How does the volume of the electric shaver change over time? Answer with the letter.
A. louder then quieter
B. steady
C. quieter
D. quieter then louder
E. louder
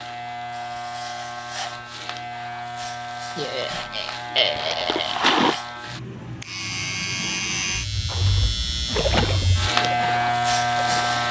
E.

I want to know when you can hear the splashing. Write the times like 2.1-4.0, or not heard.
3.7-5.6, 8.1-11.2.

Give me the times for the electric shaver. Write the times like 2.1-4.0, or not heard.
0.0-11.2.